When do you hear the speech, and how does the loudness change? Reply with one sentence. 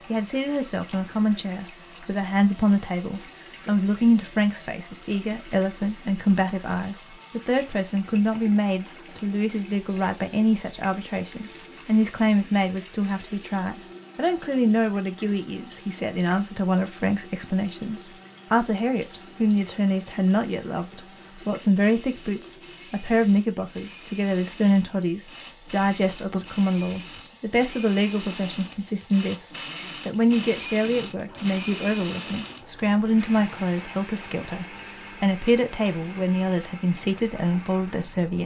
The speech can be heard from 0.1 to 38.4 s, at a steady volume.